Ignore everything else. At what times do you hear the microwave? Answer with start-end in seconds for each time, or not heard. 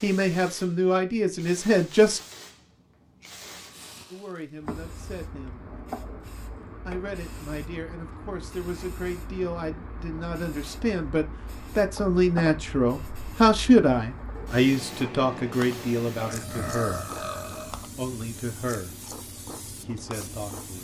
not heard.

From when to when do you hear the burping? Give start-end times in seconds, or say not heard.
16.1-17.8.